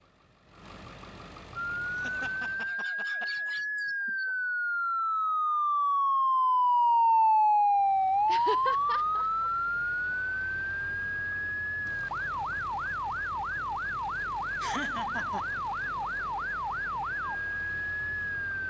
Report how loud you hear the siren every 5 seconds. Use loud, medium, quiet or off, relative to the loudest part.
medium, loud, medium, medium.